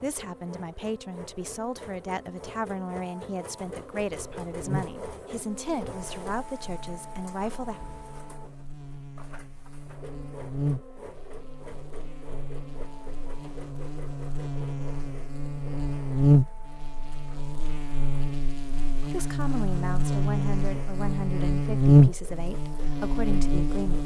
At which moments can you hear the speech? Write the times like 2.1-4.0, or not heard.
0.0-7.8, 19.1-24.0.